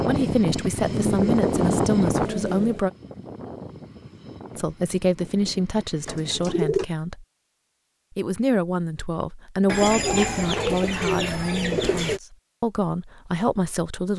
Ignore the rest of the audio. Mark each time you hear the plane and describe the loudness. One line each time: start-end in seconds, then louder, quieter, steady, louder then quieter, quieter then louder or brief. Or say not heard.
0.0-6.7 quieter.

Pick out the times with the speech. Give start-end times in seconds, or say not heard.
0.1-2.9, 4.5-7.2, 8.2-14.1.